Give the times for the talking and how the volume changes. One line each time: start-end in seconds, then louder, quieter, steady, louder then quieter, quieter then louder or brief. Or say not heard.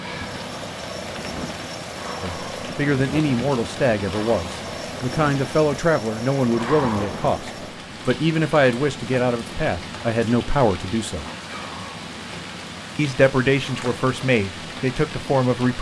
2.2-11.2 steady
12.9-15.7 brief.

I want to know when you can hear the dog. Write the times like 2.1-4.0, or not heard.
not heard.